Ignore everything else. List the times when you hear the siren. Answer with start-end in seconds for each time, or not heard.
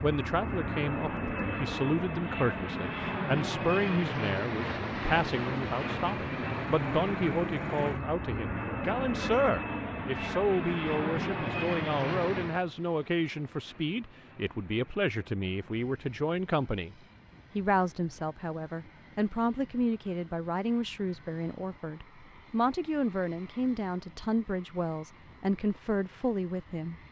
not heard.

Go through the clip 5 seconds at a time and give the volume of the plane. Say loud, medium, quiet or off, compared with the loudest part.
loud, loud, loud, quiet, quiet, quiet.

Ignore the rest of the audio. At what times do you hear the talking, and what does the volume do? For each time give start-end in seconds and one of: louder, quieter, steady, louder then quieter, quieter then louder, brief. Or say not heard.
0.0-16.9 steady
17.6-27.0 steady.